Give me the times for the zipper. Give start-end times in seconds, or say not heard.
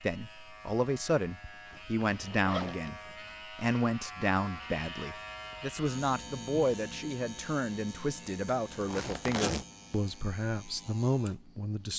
2.1-3.0, 8.4-9.7.